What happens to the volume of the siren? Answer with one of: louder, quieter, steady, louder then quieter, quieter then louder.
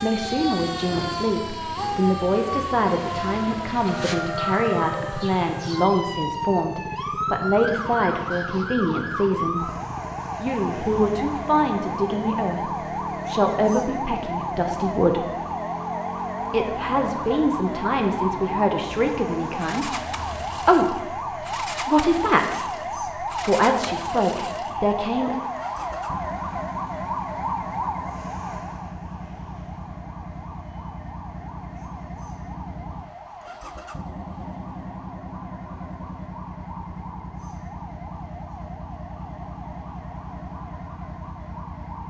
quieter.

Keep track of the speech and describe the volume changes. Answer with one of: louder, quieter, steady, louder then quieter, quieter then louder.
steady.